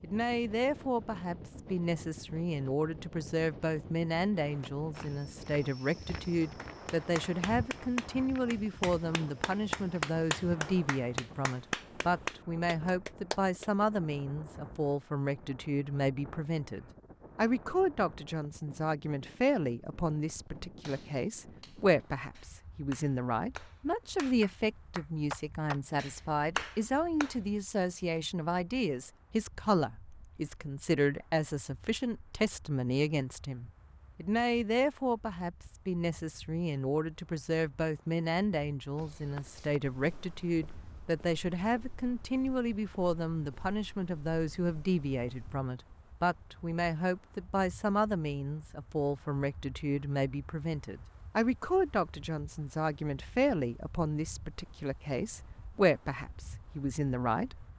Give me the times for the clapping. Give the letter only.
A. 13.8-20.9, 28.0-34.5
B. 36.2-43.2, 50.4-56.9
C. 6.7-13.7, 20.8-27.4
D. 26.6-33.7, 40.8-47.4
C.